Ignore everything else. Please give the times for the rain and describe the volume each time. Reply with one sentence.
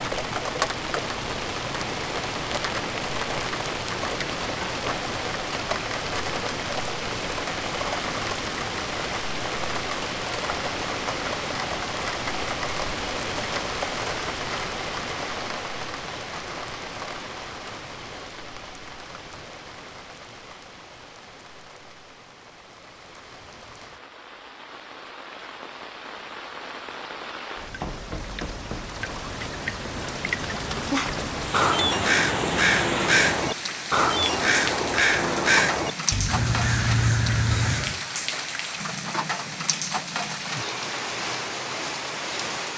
The rain can be heard from 0.0 to 42.7 s, getting quieter then louder.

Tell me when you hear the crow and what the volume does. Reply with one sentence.
You can hear the crow from 31.5 to 38.0 s, at a steady volume.